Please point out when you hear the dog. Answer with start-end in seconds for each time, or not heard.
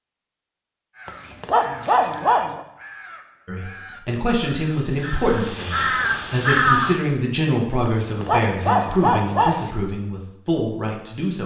1.1-2.6, 7.8-9.7.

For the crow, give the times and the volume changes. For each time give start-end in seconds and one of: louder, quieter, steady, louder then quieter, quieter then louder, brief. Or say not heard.
0.9-7.0 louder.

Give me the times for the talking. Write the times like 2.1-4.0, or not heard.
3.5-11.4.